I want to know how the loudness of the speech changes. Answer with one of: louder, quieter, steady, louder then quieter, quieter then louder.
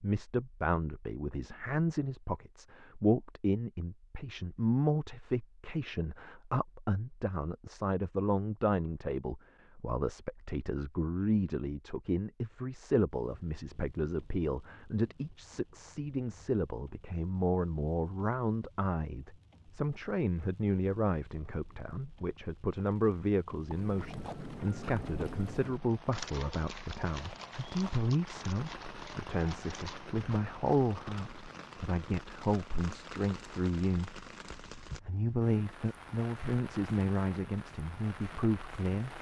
steady.